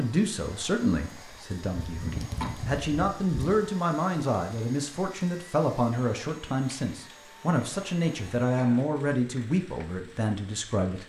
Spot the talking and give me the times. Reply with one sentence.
You can hear the talking from 0.0 to 11.0 s.